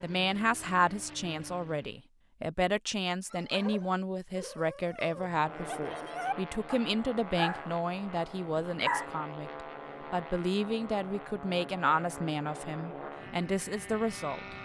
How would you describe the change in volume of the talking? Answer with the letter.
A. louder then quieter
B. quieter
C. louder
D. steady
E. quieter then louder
D.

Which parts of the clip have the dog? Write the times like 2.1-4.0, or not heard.
3.3-7.7, 8.6-9.1.